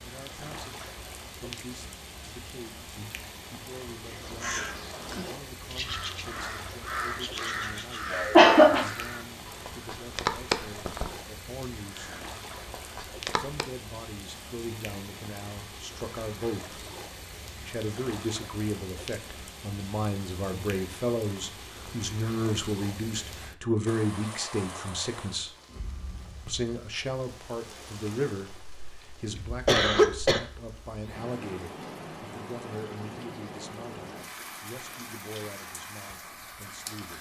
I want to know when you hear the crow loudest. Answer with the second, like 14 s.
10 s.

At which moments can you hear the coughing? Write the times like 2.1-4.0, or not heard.
8.1-8.8, 28.6-30.4.